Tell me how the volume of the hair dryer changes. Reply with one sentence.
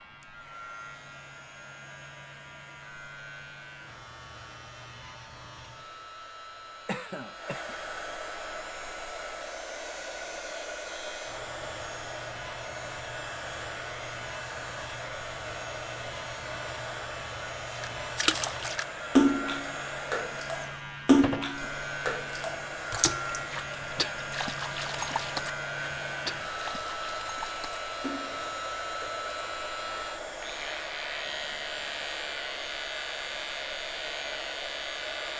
The volume of the hair dryer goes up.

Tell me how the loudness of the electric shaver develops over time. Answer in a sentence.
The loudness of the electric shaver goes up.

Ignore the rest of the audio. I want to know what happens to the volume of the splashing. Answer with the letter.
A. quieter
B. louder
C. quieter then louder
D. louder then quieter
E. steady
A.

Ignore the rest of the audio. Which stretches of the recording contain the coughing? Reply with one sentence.
The coughing can be heard from 6.8 to 7.8 s.